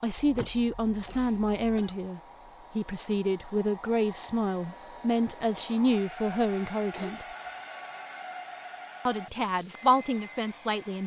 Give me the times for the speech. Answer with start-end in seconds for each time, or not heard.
0.0-7.2, 9.1-11.0.